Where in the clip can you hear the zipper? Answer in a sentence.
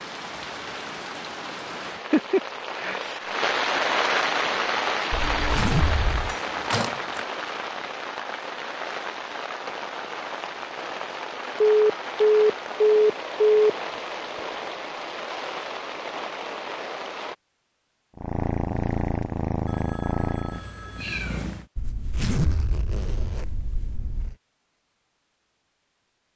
The zipper can be heard from 5.1 to 6.3 s and from 21.8 to 24.4 s.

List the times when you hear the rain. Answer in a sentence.
The rain can be heard from 0.0 to 17.4 s.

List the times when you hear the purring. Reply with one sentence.
You can hear the purring from 18.1 to 21.6 s.